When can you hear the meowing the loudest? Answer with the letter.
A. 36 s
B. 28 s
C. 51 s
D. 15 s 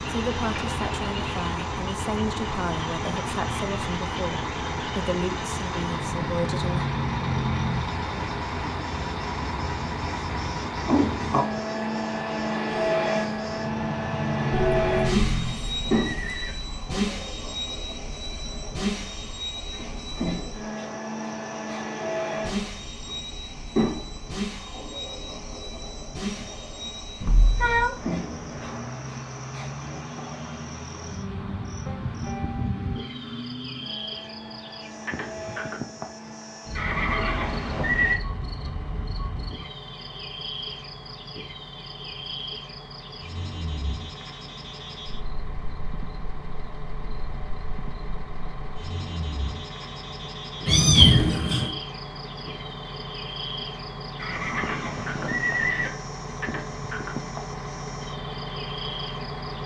C.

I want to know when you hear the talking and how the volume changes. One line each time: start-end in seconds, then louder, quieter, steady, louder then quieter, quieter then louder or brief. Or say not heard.
0.1-6.9 steady.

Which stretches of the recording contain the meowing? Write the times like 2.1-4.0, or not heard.
14.5-16.4, 27.2-27.9, 50.6-51.7.